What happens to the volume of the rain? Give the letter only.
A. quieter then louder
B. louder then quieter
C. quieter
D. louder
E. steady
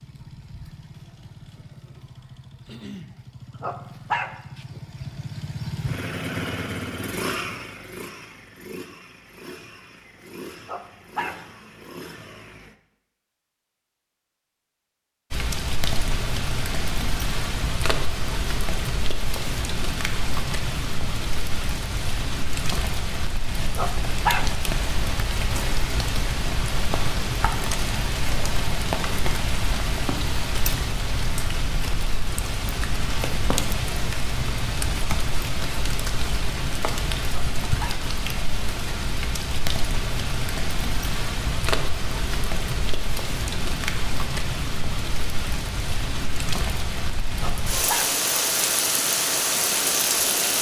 E.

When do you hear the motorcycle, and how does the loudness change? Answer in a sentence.
The motorcycle can be heard from 0.0 to 12.8 s, getting louder then quieter.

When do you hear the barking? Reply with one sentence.
The barking can be heard from 3.6 to 4.3 s, from 10.7 to 11.3 s, from 23.8 to 24.4 s, from 37.3 to 38.0 s and from 47.4 to 48.1 s.